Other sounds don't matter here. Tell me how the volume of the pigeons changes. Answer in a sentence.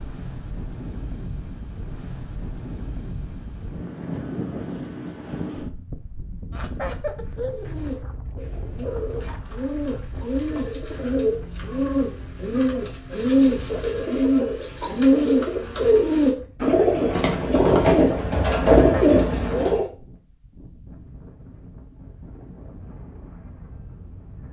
The loudness of the pigeons goes up.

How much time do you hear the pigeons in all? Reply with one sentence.
You can hear the pigeons for 12 seconds altogether.